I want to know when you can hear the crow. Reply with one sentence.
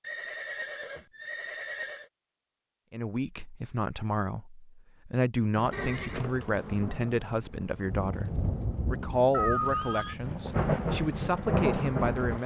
You can't hear the crow here.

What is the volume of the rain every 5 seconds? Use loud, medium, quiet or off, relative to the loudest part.
off, medium, loud.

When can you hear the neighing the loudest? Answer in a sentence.
The loudest moment of the neighing is at 10 seconds.